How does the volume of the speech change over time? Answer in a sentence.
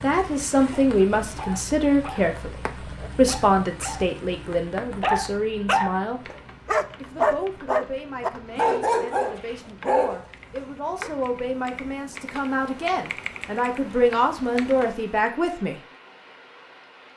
The loudness of the speech goes down, then up.